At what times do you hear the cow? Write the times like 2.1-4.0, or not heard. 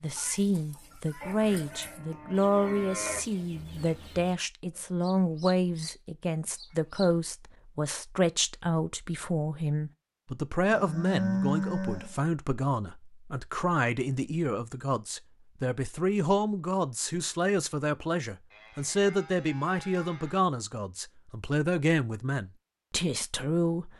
1.2-3.2, 10.7-12.2, 18.5-20.4.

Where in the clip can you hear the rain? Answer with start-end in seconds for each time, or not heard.
not heard.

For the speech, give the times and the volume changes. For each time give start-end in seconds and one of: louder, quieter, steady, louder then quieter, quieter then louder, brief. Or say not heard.
0.0-23.9 steady.